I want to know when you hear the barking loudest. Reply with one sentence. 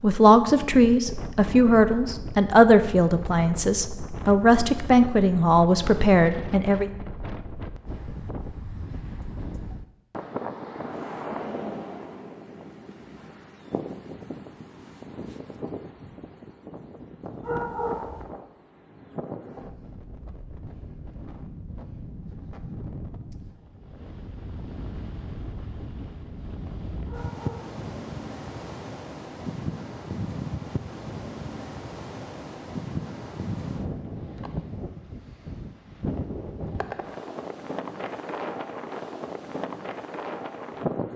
The loudest moment of the barking is at 18 seconds.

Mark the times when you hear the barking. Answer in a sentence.
The barking can be heard from 17.4 to 18.2 s and from 27.1 to 27.8 s.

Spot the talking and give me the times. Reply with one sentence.
You can hear the talking from 0.0 to 6.9 s.